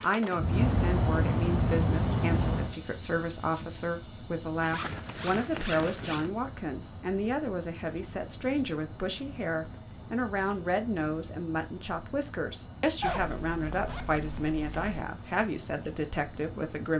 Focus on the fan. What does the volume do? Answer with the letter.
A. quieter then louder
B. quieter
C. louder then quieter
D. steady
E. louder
B.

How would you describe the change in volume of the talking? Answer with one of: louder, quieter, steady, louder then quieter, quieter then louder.
steady.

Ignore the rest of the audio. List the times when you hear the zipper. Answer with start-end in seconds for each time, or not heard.
4.6-6.3, 13.0-15.1.